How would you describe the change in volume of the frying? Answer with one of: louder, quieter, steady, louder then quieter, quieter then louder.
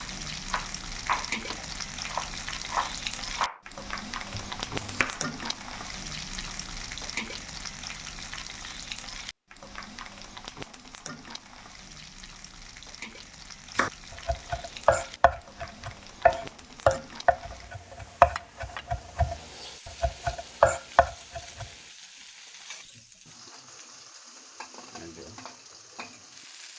quieter.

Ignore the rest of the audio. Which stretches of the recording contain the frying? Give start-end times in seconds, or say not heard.
0.0-26.7.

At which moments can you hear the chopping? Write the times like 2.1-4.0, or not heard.
0.0-3.6, 4.3-5.3, 13.8-21.6.